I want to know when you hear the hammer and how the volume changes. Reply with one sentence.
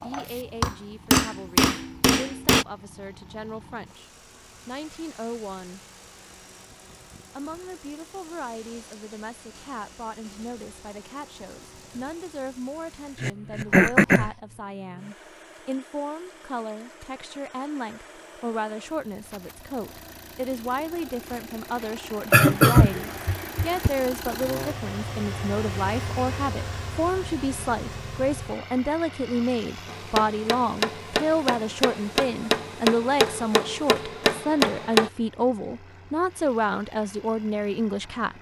You can hear the hammer briefly from 0.0 to 2.6 s; and from 29.9 to 35.1 s, getting louder.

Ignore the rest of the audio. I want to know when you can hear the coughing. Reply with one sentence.
The coughing can be heard from 13.2 to 14.3 s and from 22.3 to 23.9 s.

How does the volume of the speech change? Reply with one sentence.
The volume of the speech goes up.